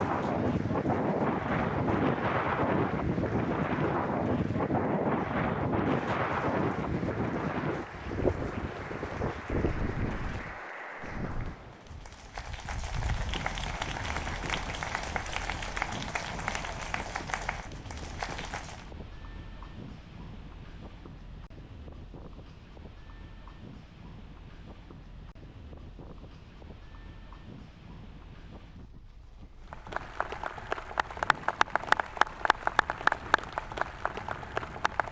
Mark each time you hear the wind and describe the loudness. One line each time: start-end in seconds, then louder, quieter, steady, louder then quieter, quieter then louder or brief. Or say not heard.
0.0-35.0 quieter.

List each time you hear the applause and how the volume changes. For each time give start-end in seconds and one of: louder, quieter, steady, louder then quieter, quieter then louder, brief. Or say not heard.
0.0-18.9 louder
29.7-35.0 louder then quieter.